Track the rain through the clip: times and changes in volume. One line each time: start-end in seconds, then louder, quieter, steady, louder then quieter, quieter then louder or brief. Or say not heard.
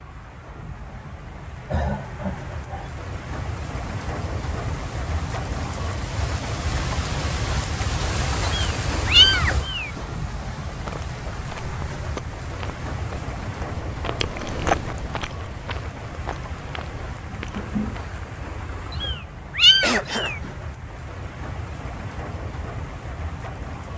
0.0-23.9 louder then quieter.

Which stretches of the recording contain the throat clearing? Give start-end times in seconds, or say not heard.
1.6-3.0, 19.8-20.4.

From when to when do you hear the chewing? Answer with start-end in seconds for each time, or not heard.
10.7-18.1.